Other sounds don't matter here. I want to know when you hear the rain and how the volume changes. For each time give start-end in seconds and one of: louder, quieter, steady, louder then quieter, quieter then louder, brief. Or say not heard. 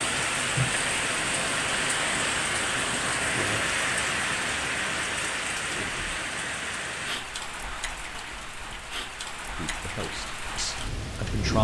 0.0-11.5 quieter.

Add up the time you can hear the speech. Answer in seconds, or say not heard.
2 s.